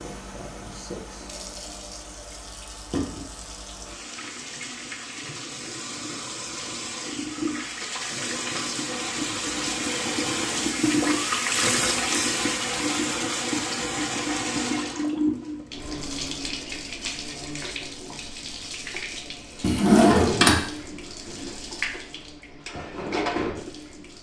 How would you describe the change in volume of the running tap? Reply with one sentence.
The volume of the running tap goes up, then down.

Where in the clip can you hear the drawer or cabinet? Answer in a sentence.
The drawer or cabinet can be heard from 19.6 to 20.6 s.